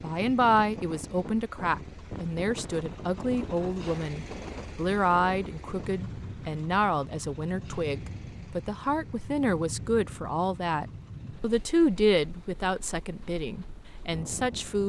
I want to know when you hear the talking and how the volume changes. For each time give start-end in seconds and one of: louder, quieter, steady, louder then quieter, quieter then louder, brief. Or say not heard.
0.0-14.8 steady.